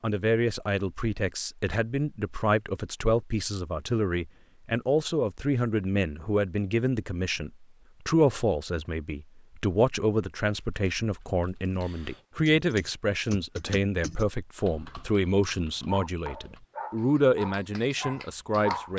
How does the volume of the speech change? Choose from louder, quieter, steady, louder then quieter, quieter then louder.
steady.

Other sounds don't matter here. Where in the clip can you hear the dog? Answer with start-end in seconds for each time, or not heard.
15.8-18.9.